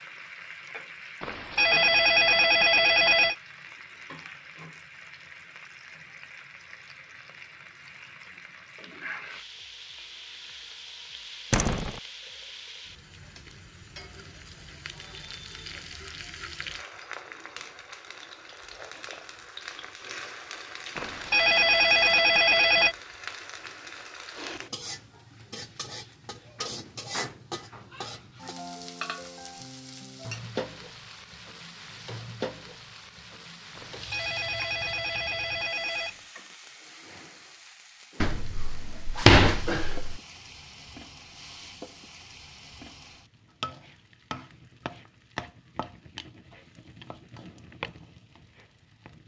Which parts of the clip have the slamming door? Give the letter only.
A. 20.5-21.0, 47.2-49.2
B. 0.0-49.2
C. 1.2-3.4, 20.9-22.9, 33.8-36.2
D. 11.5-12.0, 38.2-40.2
D.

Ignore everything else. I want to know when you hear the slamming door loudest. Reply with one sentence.
The volume of the slamming door peaks at 39 seconds.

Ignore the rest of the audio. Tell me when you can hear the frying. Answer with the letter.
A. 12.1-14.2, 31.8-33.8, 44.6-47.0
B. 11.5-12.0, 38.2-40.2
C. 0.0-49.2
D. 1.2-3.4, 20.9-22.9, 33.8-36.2
C.